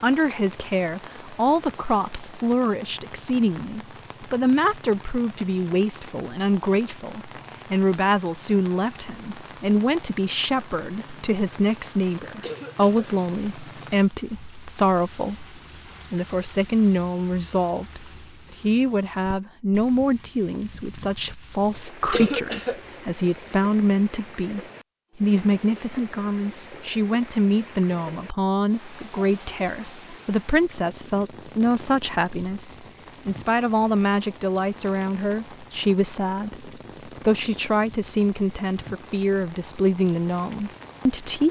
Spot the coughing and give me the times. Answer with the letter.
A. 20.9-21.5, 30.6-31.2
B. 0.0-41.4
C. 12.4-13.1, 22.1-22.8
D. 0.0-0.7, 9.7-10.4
C.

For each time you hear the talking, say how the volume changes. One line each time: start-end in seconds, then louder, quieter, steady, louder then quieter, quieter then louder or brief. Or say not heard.
0.0-41.4 steady.